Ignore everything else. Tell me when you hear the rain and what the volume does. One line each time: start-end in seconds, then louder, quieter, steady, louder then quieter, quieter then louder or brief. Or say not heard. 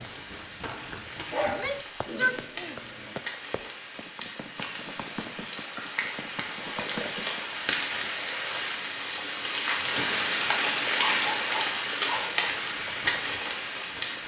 0.0-14.2 louder.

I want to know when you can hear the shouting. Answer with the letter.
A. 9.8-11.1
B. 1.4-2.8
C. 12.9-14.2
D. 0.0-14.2
B.